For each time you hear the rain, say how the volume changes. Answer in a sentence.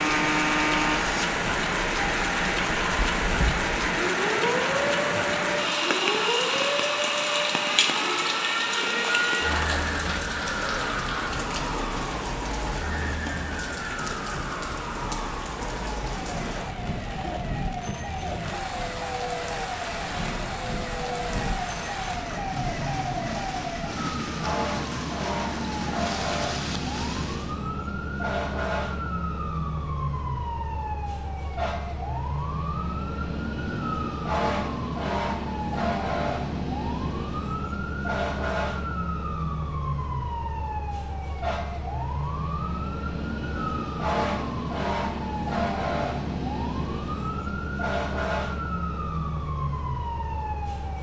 The rain can be heard from 0.0 to 27.6 s, getting quieter.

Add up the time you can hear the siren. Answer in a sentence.
You can hear the siren for 51 seconds altogether.